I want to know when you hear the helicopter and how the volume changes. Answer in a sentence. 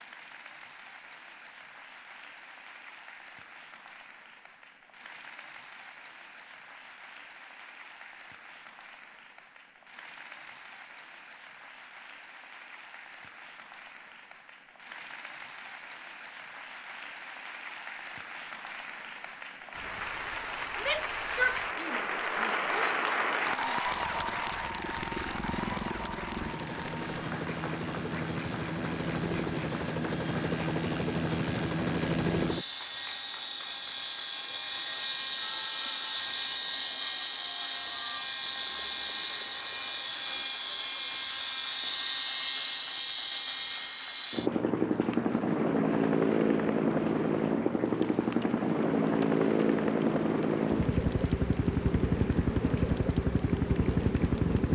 The helicopter can be heard from 23.9 to 54.6 s, getting louder.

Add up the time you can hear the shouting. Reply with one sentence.
The shouting can be heard for 2 seconds in total.